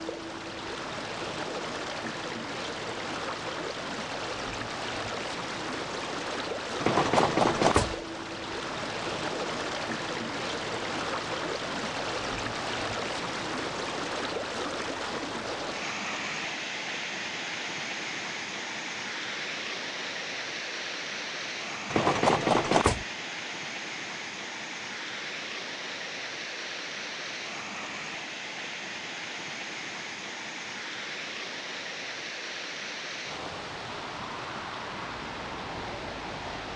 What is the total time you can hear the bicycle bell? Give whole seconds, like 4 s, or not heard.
2 s.